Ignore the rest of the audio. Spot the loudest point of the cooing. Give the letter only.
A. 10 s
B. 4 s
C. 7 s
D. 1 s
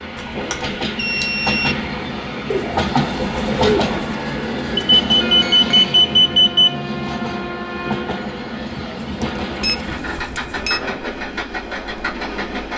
B.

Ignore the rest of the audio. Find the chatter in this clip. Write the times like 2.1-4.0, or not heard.
not heard.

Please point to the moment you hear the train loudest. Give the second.
3 s.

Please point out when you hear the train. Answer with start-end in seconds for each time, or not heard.
0.0-12.7.